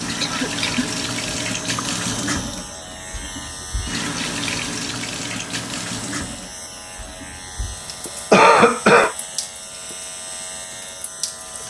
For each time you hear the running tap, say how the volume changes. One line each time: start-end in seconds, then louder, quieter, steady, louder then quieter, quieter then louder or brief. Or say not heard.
0.0-11.6 quieter.